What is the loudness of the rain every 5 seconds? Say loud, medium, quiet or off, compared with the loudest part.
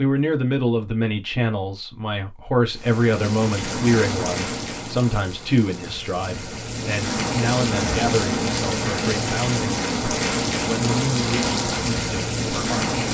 medium, loud, loud.